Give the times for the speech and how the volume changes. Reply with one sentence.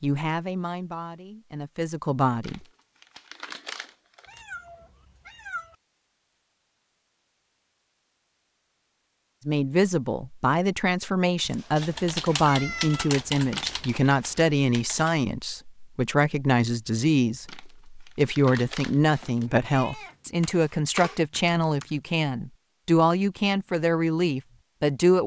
You can hear the speech briefly from 0.0 to 2.6 s; and from 9.4 to 25.2 s, at a steady volume.